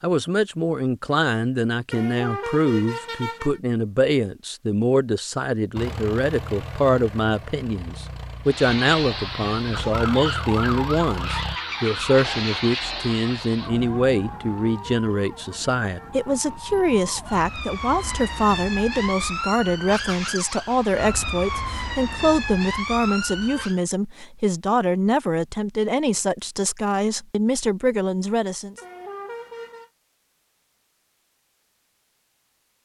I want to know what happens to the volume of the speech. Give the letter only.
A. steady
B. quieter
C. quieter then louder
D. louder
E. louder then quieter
A.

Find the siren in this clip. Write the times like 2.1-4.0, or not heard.
8.4-23.8.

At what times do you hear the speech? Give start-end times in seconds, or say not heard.
0.0-28.8.